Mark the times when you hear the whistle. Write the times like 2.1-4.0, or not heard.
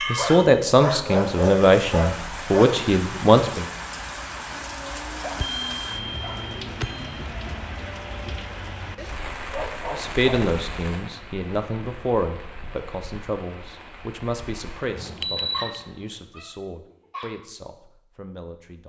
not heard.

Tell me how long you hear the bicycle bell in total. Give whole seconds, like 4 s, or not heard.
2 s.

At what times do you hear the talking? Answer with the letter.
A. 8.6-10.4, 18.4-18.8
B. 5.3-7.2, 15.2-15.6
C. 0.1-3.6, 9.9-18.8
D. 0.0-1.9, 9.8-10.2
C.